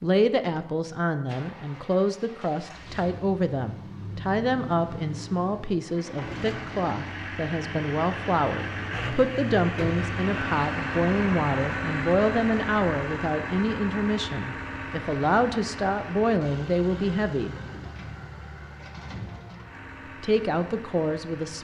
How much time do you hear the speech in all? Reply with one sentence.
The speech can be heard for 19 seconds in total.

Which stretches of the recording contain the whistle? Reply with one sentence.
You can't hear the whistle here.